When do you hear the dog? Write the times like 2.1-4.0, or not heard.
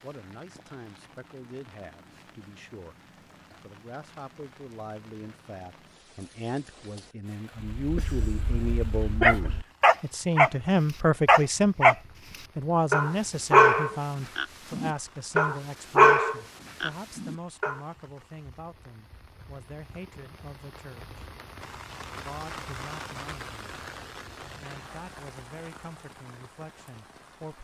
7.6-10.5, 11.2-11.9, 12.9-17.8.